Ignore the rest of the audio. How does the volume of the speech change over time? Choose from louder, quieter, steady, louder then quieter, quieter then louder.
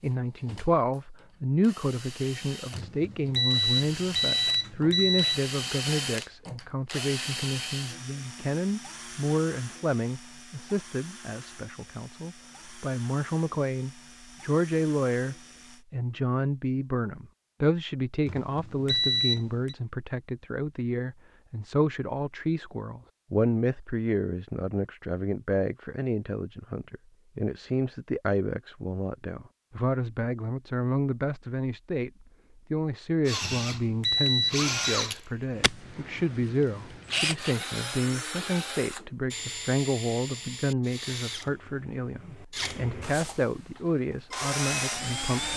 steady.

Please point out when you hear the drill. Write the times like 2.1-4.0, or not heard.
0.0-15.8, 33.2-45.5.